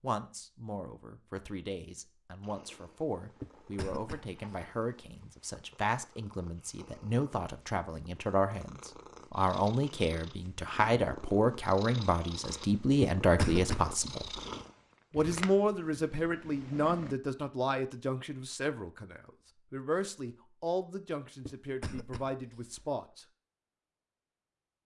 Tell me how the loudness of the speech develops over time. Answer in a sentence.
The loudness of the speech goes up, then down.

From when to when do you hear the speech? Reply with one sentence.
The speech can be heard from 0.0 to 14.2 s and from 15.1 to 23.2 s.